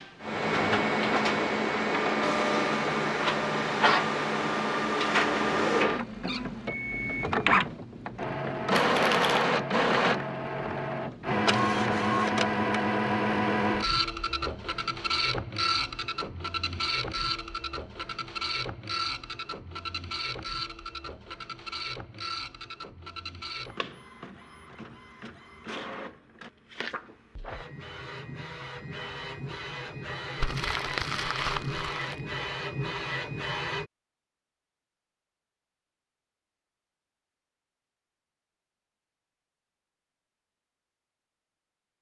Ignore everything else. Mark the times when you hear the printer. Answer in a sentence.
You can hear the printer from 0.0 to 33.9 s.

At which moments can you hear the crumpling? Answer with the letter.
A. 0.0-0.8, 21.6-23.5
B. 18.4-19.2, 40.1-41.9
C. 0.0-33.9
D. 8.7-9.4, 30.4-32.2
D.